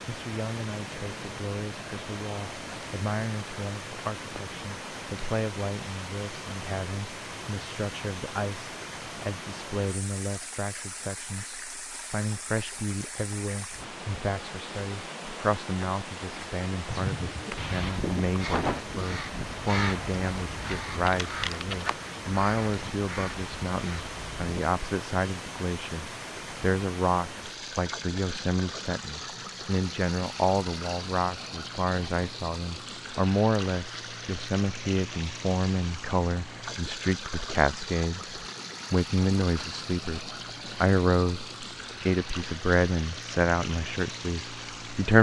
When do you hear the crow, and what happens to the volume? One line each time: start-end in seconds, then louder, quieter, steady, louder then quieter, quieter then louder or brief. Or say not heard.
16.9-24.6 quieter.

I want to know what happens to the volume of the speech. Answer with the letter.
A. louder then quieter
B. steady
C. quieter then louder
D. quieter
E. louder
E.